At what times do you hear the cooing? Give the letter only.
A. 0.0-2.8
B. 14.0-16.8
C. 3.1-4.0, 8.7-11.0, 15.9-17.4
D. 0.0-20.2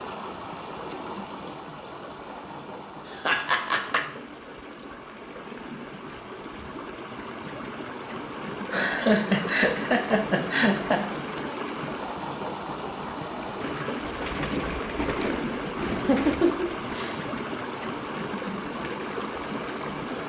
B.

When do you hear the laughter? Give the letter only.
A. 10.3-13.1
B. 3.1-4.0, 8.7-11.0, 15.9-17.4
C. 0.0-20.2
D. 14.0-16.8
B.